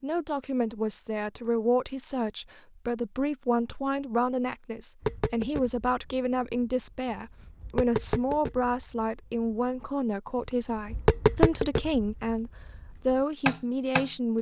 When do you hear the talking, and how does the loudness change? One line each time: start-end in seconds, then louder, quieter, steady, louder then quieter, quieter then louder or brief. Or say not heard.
0.0-14.3 steady.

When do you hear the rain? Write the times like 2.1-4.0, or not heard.
not heard.